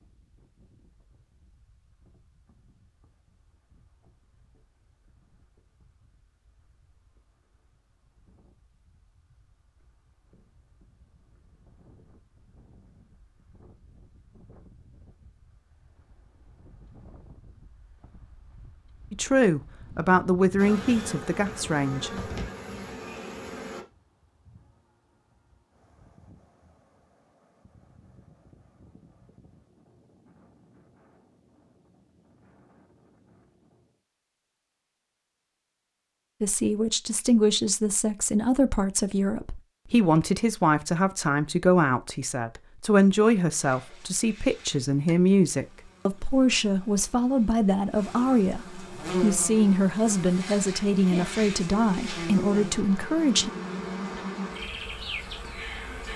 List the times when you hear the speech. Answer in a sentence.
The speech can be heard from 19.1 to 22.3 s and from 36.4 to 53.5 s.